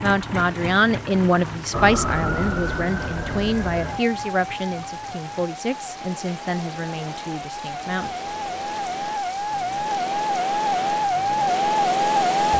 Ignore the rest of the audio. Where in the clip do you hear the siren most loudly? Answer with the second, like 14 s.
12 s.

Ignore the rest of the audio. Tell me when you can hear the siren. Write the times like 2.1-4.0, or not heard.
1.7-12.5.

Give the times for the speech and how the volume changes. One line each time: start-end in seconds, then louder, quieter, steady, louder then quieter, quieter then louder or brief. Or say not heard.
0.0-8.1 quieter.